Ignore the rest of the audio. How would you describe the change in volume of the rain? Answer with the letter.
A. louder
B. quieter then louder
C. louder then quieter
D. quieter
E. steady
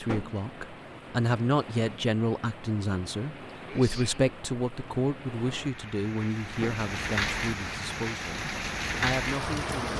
A.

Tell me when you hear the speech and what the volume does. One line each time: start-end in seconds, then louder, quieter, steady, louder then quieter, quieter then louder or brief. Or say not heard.
0.0-9.9 quieter.